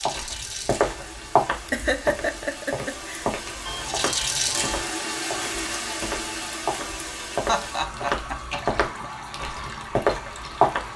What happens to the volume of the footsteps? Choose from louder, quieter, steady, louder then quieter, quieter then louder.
quieter then louder.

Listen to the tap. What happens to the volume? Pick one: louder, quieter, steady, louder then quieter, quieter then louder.
louder then quieter.